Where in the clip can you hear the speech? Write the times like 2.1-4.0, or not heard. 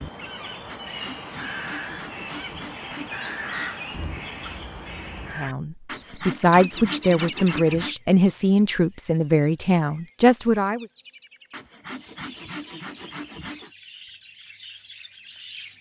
5.3-10.8.